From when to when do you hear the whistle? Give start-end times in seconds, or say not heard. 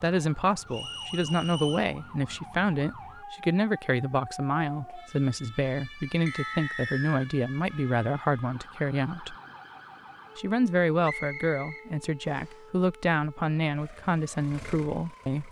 0.7-1.9, 6.2-7.3, 11.0-12.6.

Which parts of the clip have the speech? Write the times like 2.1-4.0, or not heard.
0.0-9.3, 10.3-15.4.